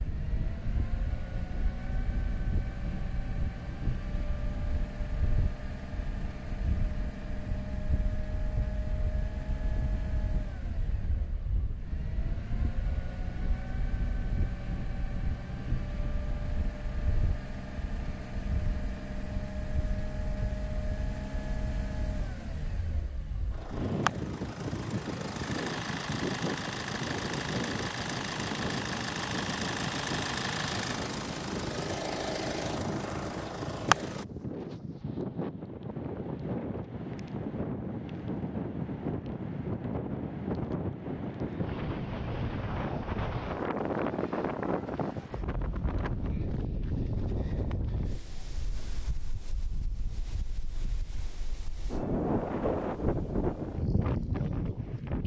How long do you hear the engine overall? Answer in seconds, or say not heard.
34 s.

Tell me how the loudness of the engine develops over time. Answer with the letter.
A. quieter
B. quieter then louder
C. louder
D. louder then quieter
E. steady
C.